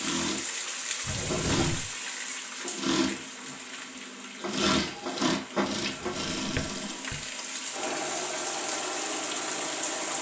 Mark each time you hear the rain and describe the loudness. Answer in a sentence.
The rain can be heard from 0.0 to 10.1 s, getting quieter then louder.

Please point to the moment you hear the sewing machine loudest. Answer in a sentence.
The volume of the sewing machine peaks at 5 seconds.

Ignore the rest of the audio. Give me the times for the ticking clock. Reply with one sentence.
The ticking clock can't be heard in this clip.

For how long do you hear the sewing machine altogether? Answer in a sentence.
You can hear the sewing machine for 10 seconds altogether.